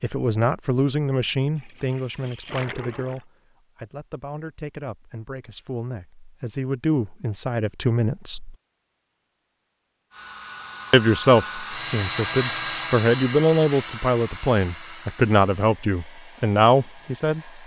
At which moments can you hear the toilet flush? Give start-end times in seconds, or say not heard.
1.6-3.2.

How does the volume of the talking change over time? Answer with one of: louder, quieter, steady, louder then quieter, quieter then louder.
quieter then louder.